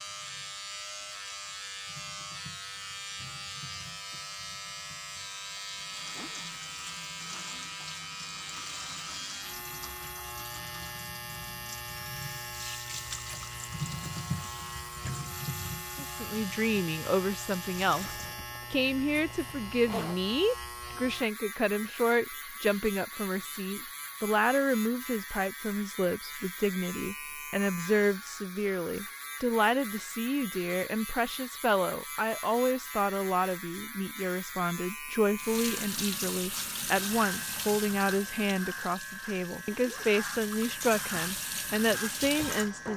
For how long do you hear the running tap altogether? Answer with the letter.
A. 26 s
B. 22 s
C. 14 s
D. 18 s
A.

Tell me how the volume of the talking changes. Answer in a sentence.
The volume of the talking stays about the same.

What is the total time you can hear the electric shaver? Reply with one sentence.
You can hear the electric shaver for 43 seconds altogether.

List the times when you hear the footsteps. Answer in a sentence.
The footsteps can't be heard in this clip.